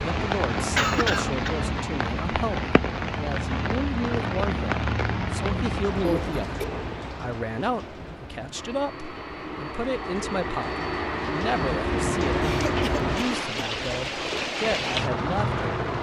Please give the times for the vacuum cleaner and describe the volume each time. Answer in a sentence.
The vacuum cleaner can be heard from 8.6 to 13.5 s, getting louder.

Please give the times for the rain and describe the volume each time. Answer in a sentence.
The rain can be heard from 0.0 to 15.9 s, getting quieter then louder.